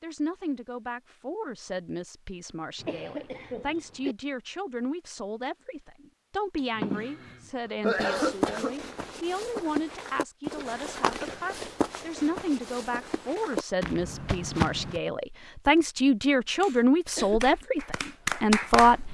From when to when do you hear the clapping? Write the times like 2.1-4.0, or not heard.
17.2-19.0.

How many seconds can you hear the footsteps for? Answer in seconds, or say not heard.
7 s.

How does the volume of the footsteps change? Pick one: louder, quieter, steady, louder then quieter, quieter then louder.
quieter then louder.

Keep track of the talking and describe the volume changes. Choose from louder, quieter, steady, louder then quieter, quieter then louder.
louder.